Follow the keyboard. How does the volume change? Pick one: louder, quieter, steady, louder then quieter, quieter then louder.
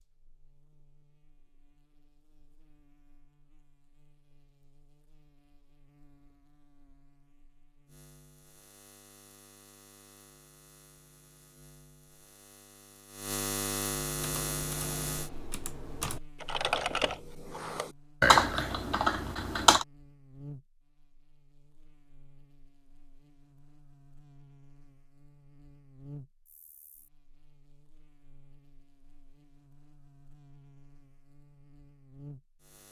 louder then quieter.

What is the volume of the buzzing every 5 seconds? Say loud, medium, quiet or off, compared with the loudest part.
quiet, quiet, loud, medium, quiet, quiet, quiet.